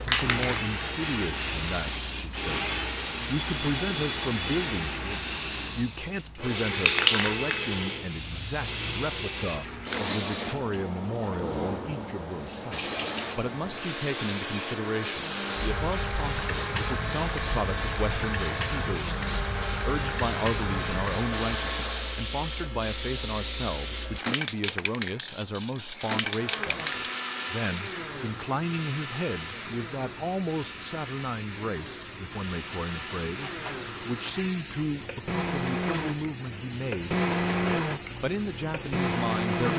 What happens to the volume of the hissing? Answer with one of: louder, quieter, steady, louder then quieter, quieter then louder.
quieter.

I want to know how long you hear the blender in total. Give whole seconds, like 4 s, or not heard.
36 s.